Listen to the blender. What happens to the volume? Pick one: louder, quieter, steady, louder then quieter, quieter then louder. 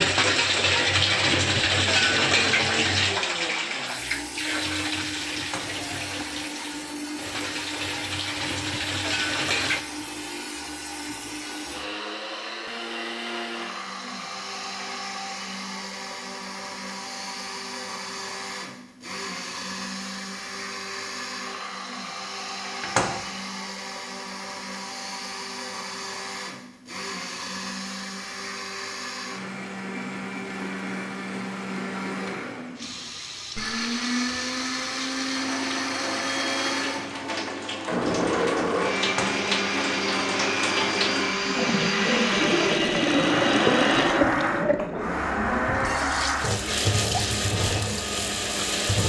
louder.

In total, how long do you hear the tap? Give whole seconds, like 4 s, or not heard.
26 s.